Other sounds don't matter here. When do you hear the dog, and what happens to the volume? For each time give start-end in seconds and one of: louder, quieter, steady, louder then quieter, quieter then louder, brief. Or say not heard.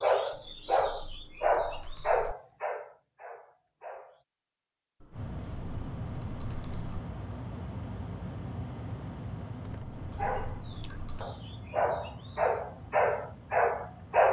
0.0-4.2 quieter
9.9-14.2 louder.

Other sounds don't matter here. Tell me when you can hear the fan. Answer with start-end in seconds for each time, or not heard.
5.1-14.2.